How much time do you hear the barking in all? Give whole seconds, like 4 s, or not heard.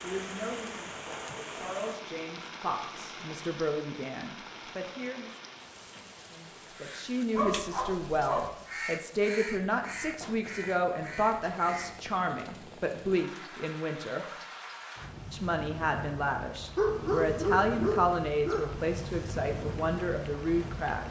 3 s.